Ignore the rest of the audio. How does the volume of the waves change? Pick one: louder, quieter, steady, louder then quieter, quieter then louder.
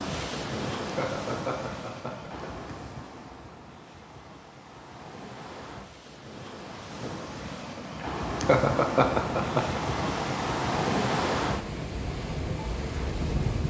quieter then louder.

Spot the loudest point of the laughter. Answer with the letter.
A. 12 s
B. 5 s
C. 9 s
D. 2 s
C.